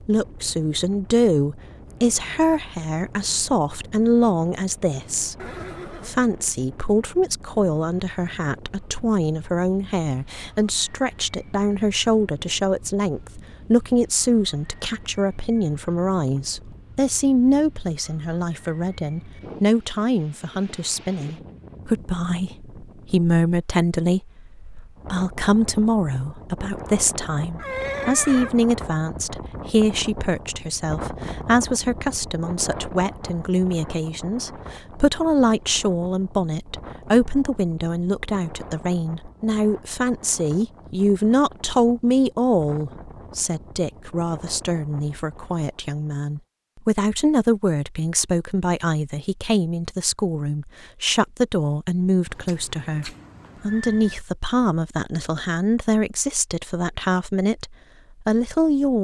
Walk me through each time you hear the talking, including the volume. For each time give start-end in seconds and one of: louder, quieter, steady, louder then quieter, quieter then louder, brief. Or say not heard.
0.1-58.9 steady.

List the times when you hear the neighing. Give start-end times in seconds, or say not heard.
5.3-6.2, 27.6-28.5, 52.2-54.1.